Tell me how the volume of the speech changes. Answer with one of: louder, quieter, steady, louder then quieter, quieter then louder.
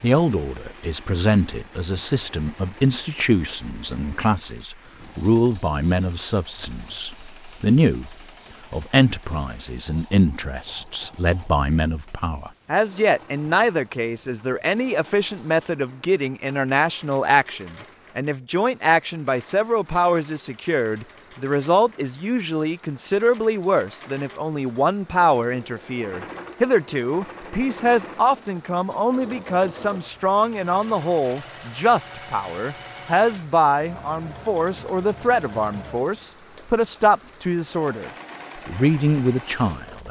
steady.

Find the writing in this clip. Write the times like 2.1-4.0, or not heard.
not heard.